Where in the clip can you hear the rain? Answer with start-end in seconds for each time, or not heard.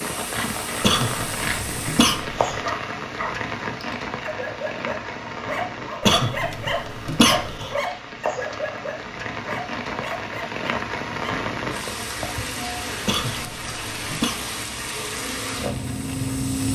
0.0-16.6.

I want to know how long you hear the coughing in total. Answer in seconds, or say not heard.
5 s.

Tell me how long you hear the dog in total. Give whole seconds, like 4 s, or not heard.
9 s.